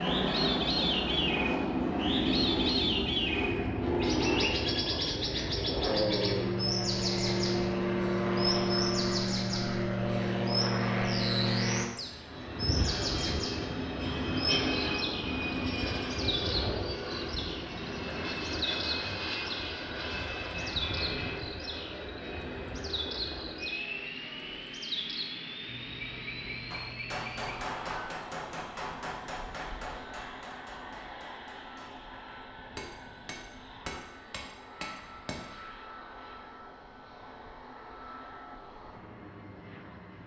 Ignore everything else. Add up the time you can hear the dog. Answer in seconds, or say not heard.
not heard.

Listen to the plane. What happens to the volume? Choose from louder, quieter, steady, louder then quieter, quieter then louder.
quieter.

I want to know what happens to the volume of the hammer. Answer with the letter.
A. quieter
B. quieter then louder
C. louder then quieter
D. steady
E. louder
B.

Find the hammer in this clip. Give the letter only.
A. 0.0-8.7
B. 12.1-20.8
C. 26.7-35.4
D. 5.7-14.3
C.